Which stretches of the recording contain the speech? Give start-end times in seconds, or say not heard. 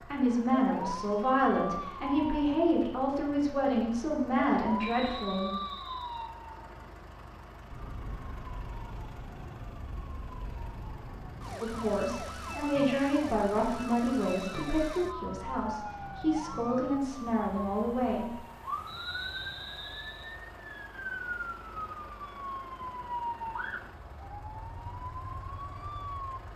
0.1-5.5, 11.6-18.4.